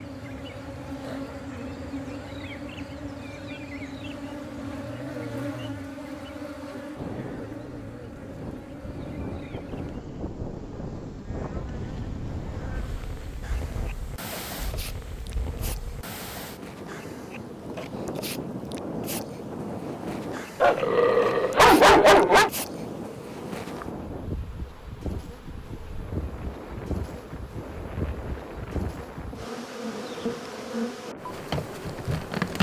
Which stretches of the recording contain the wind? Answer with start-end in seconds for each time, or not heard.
7.0-32.5.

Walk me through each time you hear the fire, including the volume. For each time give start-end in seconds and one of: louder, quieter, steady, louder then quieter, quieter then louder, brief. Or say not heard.
not heard.